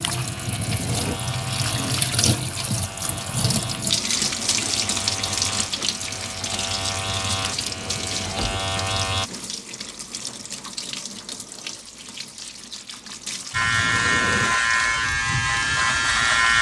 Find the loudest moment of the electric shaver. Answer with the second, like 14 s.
16 s.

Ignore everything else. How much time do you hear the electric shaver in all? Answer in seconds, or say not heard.
12 s.